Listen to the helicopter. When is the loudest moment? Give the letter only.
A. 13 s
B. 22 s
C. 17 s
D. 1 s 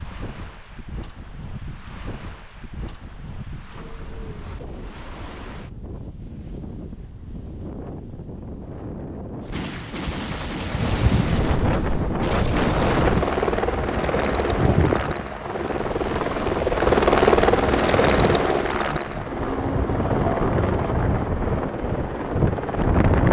C.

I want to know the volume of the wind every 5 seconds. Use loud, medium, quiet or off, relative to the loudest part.
quiet, quiet, loud, medium, loud.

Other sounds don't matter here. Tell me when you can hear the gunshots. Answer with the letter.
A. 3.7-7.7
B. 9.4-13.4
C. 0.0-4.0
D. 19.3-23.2
B.